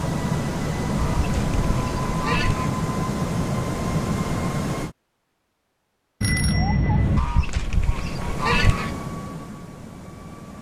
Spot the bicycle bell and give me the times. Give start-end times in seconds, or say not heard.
6.2-7.2.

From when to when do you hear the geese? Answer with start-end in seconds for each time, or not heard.
0.9-2.7, 7.2-8.9.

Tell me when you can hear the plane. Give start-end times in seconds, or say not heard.
0.0-5.0, 7.0-10.5.